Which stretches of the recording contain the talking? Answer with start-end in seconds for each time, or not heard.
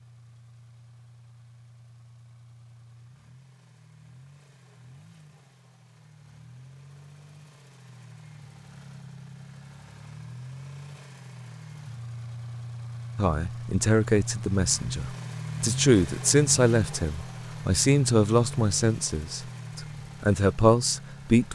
13.2-21.5.